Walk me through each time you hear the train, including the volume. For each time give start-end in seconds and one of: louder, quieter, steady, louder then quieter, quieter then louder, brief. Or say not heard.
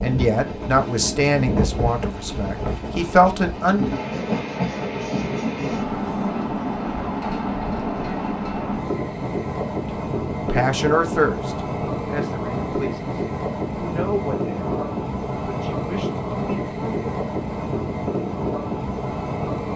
0.0-19.7 steady.